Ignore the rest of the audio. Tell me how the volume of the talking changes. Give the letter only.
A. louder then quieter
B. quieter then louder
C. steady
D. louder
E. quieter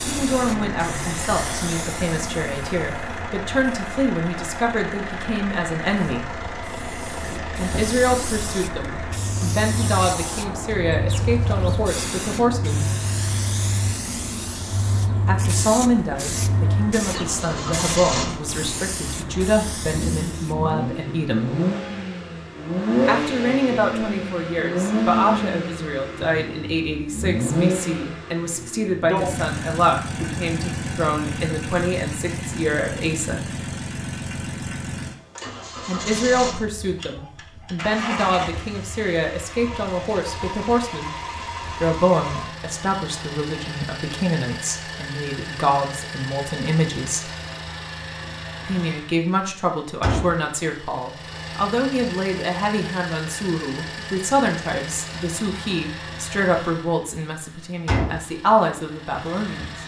C.